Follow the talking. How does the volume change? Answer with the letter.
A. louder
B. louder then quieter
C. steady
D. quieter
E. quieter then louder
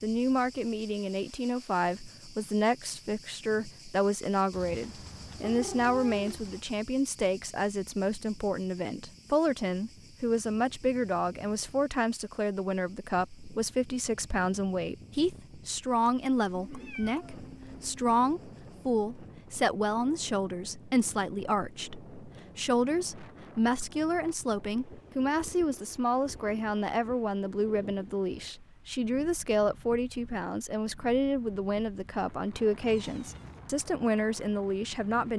C.